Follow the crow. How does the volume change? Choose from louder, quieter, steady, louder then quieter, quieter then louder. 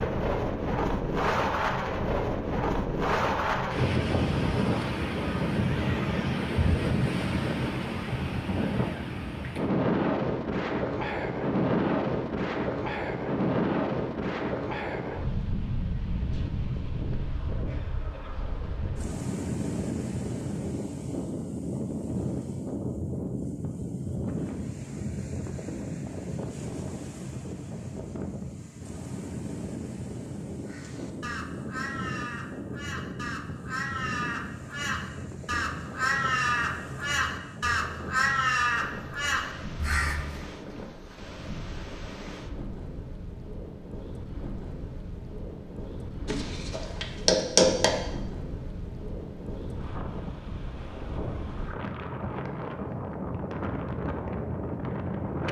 louder.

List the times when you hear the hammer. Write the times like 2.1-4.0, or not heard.
46.2-47.9.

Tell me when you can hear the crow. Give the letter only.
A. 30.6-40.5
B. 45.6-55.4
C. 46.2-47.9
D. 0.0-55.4
A.